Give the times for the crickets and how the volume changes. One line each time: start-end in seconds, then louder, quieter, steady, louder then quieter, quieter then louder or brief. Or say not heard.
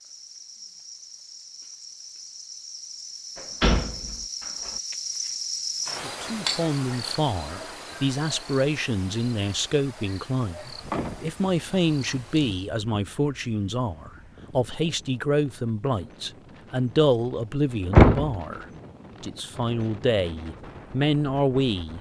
0.0-12.7 louder then quieter.